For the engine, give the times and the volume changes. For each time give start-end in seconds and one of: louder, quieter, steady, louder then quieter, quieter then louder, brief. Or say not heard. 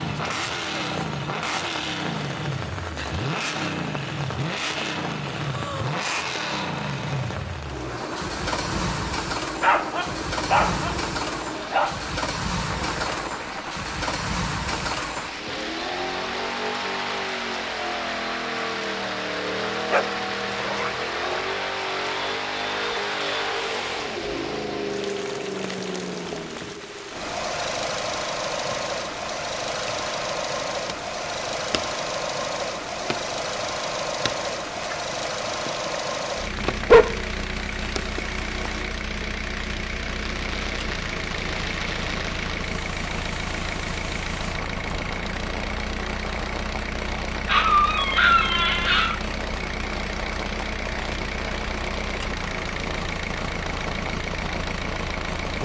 0.0-55.6 steady.